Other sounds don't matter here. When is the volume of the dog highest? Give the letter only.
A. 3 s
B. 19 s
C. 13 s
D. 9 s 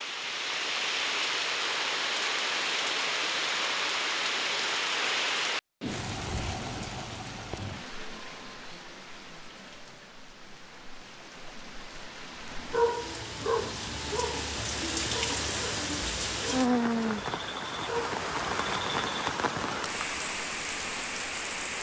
C.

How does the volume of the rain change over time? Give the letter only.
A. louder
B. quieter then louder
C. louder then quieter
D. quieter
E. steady
B.